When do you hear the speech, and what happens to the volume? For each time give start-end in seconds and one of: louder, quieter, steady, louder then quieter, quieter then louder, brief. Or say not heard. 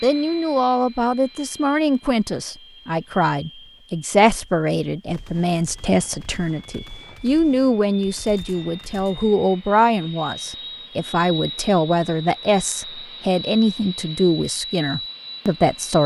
0.0-16.0 steady.